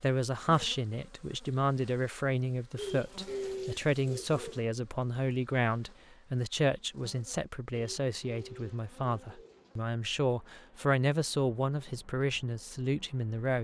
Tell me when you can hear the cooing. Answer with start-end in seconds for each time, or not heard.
2.8-4.7, 7.7-9.8.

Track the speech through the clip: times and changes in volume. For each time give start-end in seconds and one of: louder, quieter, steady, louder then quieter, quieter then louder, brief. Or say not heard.
0.0-13.5 steady.